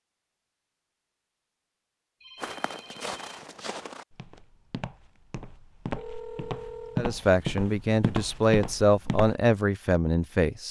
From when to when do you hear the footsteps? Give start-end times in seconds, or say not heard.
2.4-9.3.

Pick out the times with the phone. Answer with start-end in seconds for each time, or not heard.
2.2-3.4, 6.0-7.1.